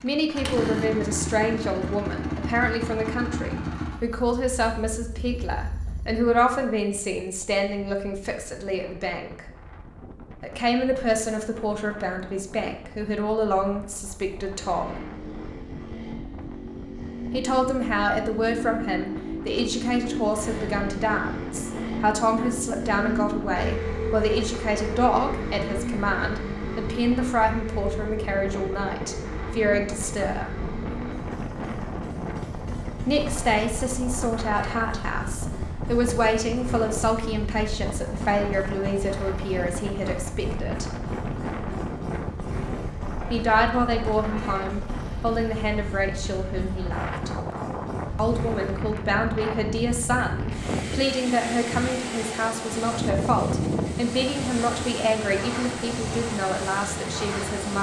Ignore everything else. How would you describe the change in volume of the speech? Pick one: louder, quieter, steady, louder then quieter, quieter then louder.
steady.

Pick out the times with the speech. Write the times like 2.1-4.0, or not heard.
0.0-9.4, 10.4-15.0, 17.3-30.5, 33.0-40.9, 43.3-47.3, 48.1-57.7.